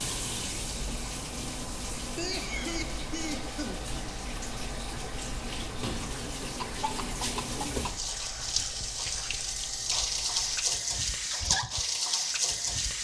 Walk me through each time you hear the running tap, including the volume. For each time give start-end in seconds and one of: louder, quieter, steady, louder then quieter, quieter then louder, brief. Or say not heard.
0.0-12.9 louder.